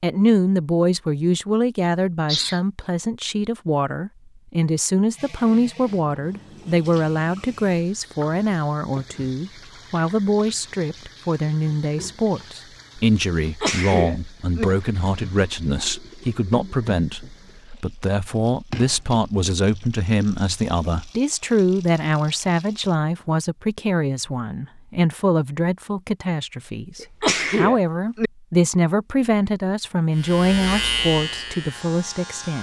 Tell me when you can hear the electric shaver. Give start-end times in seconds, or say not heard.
30.1-32.5.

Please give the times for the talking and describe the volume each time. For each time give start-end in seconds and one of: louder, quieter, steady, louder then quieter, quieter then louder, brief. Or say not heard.
0.0-32.5 steady.